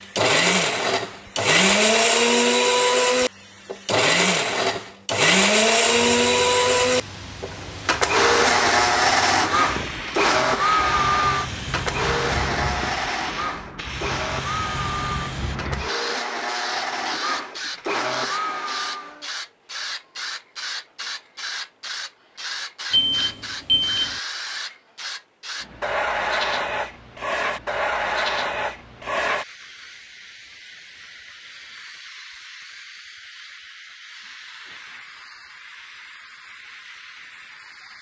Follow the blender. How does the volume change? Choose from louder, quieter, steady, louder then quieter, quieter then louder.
quieter.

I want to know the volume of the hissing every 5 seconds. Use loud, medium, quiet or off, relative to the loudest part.
quiet, medium, medium, medium, medium, loud, quiet, quiet.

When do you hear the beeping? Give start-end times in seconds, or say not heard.
22.9-24.1.